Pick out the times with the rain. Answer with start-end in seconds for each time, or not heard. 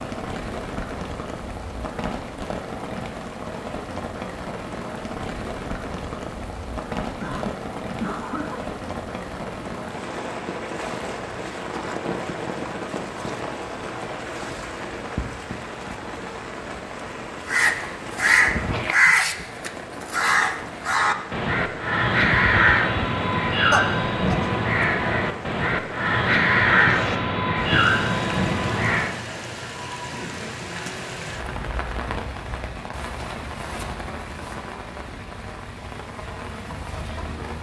0.0-37.5.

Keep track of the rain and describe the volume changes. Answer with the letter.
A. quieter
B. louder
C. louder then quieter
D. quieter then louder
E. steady
E.